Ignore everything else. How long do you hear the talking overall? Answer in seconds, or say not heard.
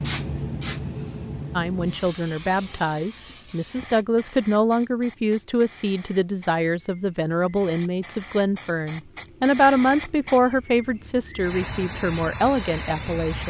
12 s.